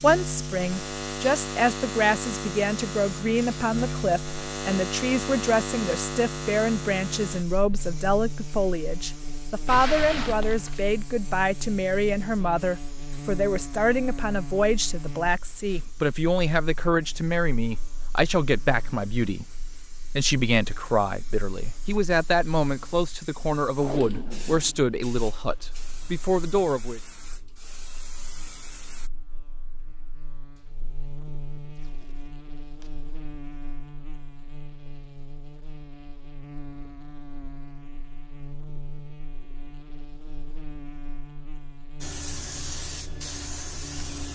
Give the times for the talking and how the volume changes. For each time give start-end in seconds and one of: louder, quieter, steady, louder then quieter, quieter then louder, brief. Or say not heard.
0.0-27.0 steady.